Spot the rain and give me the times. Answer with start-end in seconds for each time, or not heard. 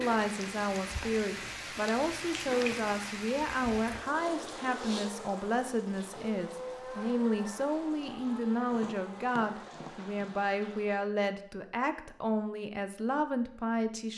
0.0-11.2.